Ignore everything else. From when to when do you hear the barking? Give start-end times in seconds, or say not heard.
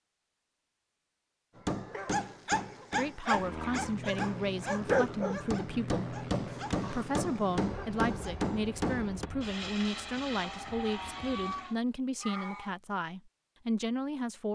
1.9-8.3.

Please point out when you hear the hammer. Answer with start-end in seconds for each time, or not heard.
1.6-9.3.